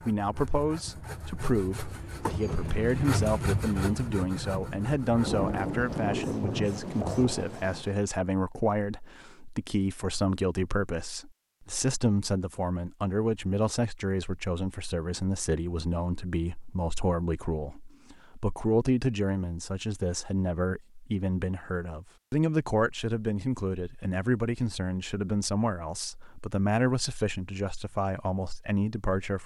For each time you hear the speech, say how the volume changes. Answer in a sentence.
The speech can be heard from 0.0 to 29.4 s, at a steady volume.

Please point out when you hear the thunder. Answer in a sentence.
The thunder can be heard from 5.2 to 8.0 s.